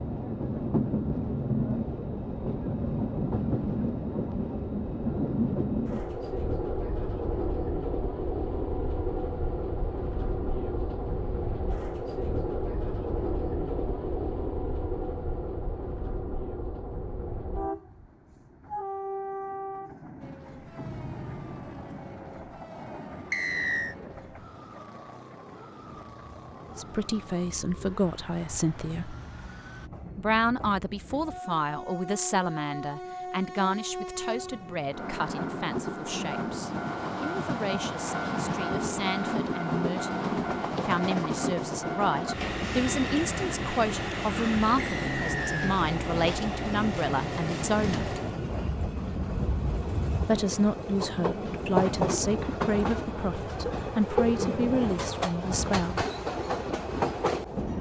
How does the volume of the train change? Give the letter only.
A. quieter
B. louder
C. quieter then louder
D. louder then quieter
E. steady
C.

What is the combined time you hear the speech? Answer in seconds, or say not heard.
26 s.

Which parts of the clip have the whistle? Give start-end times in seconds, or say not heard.
23.3-23.9, 44.8-45.8.